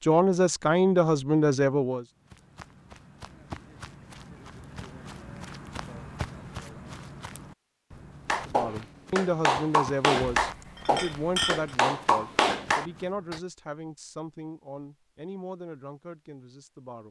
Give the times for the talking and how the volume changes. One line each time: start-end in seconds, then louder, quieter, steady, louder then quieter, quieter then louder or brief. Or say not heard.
0.0-2.0 brief
8.4-17.0 quieter.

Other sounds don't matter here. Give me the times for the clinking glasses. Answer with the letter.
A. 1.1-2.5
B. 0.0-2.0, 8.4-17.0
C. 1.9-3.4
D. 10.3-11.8
D.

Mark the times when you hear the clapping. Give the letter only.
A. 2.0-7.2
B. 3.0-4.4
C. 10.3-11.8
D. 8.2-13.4
D.